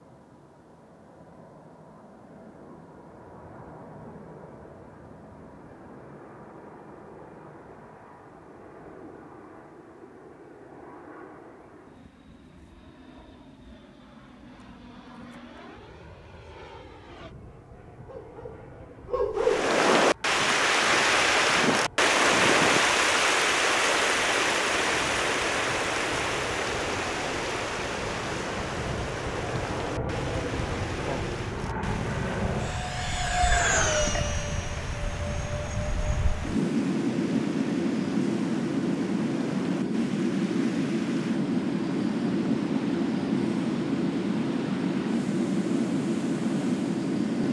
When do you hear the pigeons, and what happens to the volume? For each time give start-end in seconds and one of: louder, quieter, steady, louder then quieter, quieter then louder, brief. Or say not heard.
not heard.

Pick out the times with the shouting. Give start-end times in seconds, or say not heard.
not heard.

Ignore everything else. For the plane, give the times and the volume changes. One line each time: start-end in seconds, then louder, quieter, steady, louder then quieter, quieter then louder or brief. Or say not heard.
0.0-47.4 louder.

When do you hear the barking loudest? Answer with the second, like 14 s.
19 s.